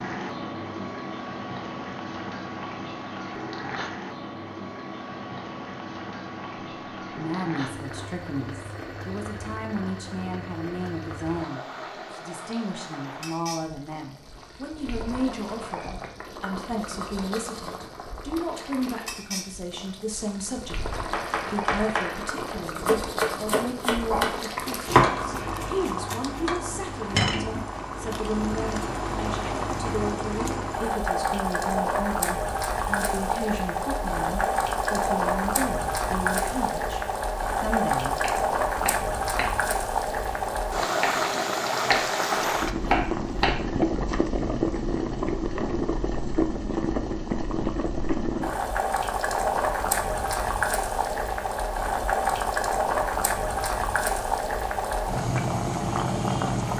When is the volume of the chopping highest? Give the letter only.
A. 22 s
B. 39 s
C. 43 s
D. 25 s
D.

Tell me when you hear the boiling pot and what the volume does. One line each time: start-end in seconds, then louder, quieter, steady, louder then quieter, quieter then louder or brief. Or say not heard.
0.0-56.7 louder.